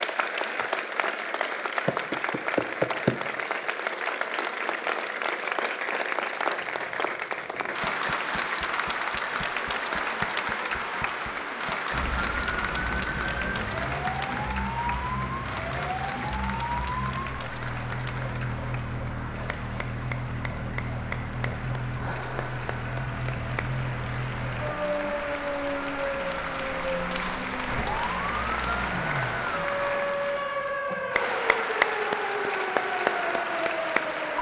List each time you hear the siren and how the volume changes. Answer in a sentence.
The siren can be heard from 11.9 to 34.3 s, at a steady volume.